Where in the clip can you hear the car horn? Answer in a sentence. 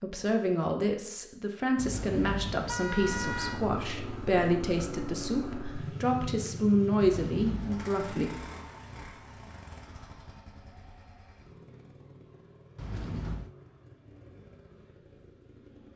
The car horn can be heard from 1.8 to 3.6 s, from 7.0 to 7.9 s and from 12.8 to 13.5 s.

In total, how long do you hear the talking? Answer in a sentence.
The talking can be heard for 8 seconds in total.